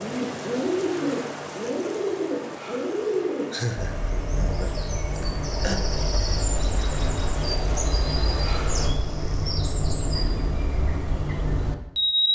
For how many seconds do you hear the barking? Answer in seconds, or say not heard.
not heard.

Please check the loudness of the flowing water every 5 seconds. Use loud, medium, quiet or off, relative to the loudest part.
loud, loud, off.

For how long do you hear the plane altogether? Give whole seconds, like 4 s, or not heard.
not heard.